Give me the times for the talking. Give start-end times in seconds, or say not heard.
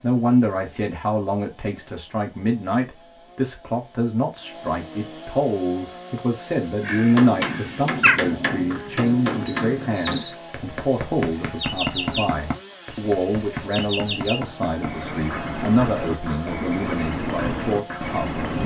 0.0-18.6.